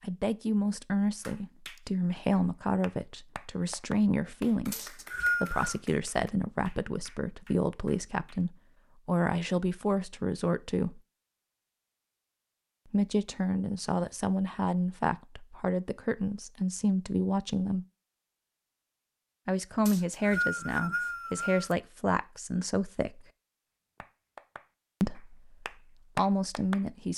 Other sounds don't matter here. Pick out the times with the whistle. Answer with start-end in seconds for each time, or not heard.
4.7-5.8, 19.9-21.8.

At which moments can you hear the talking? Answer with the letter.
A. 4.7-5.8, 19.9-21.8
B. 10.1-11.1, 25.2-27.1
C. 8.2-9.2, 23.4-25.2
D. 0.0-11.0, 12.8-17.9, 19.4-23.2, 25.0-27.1
D.